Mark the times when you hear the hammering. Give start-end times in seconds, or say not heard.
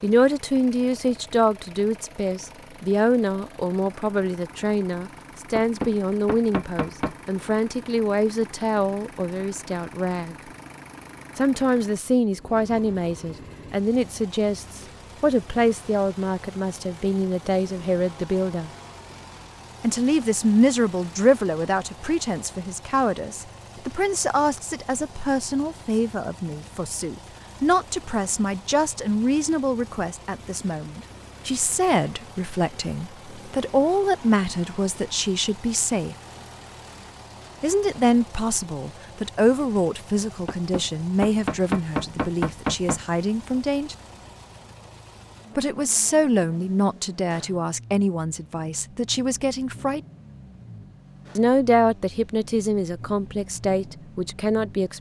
5.5-7.2, 40.5-43.0.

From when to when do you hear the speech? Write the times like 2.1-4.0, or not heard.
0.0-10.3, 11.3-18.7, 19.8-36.1, 37.6-44.0, 45.5-50.0, 51.4-54.9.